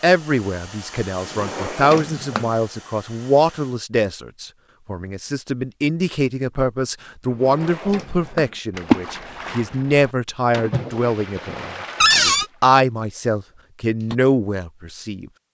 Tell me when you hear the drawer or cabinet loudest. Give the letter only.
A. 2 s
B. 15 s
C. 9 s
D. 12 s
D.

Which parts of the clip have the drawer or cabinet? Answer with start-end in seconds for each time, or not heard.
1.3-2.5, 7.3-8.5, 12.0-12.4.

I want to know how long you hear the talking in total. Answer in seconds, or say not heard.
15 s.